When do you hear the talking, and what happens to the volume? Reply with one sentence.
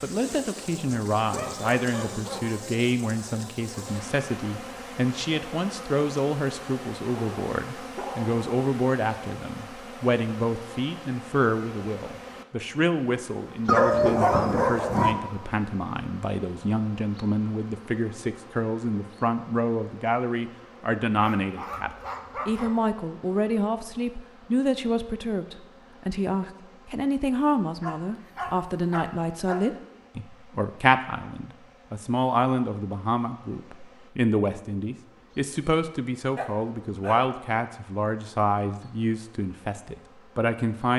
You can hear the talking from 0.0 to 40.9 s, at a steady volume.